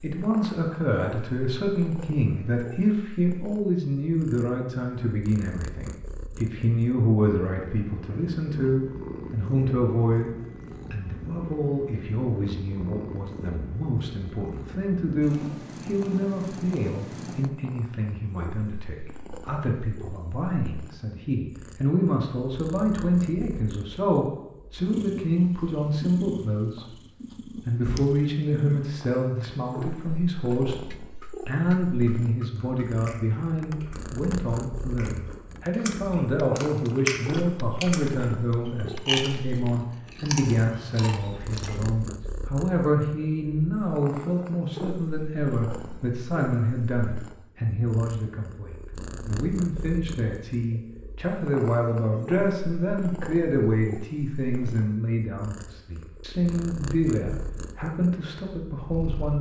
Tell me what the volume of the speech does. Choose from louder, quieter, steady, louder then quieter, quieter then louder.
steady.